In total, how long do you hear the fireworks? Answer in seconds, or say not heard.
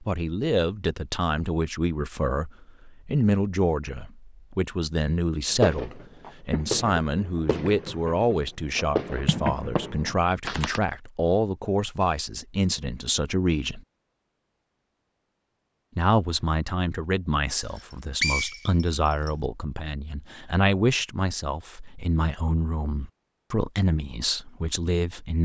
5 s.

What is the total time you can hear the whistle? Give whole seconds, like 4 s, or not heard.
2 s.